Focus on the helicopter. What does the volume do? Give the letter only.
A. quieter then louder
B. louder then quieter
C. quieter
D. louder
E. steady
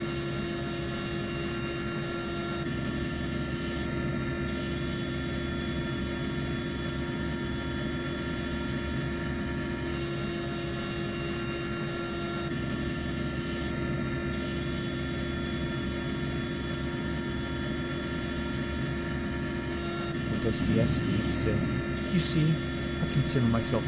E.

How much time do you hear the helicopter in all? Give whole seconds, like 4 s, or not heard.
24 s.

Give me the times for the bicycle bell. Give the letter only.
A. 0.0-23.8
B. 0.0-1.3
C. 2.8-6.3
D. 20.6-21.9
D.